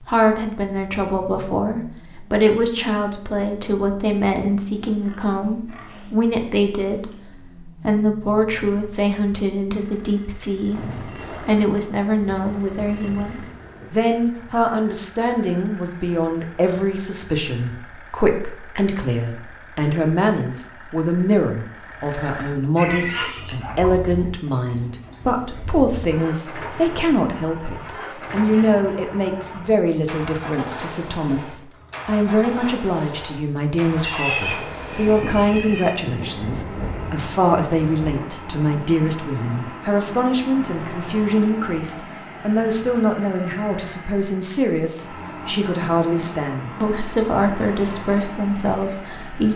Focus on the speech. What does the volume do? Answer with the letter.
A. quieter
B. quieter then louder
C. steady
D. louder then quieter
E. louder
C.